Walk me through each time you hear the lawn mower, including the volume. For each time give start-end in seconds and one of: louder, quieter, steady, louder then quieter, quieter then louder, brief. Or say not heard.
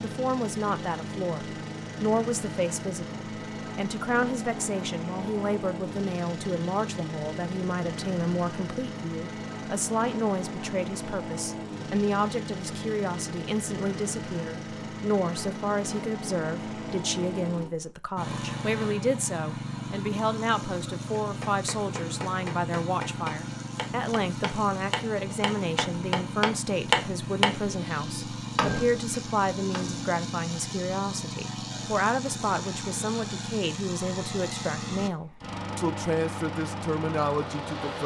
0.0-38.0 steady.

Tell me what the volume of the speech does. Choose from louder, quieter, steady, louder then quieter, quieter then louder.
steady.